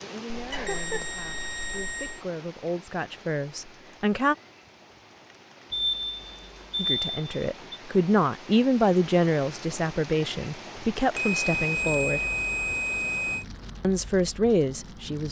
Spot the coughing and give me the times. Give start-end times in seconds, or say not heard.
0.5-1.1.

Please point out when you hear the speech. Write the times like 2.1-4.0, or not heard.
0.0-4.3, 6.8-12.2, 13.8-15.2.